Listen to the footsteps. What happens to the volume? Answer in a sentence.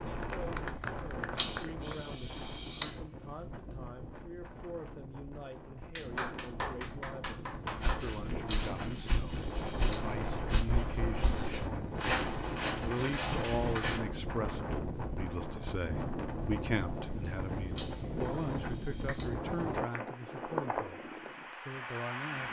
The loudness of the footsteps goes up.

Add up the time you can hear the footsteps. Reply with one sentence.
The footsteps can be heard for 6 seconds in total.